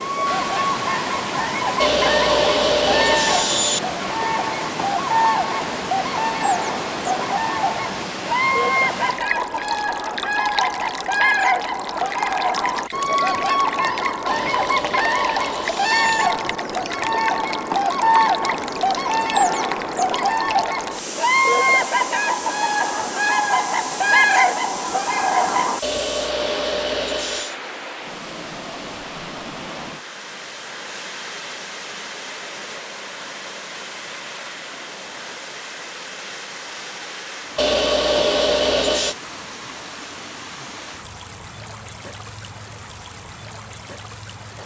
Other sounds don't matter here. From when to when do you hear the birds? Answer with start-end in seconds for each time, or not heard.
0.0-25.8.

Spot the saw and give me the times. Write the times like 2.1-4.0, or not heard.
1.8-3.8, 14.2-16.3, 25.8-27.6, 37.5-39.1.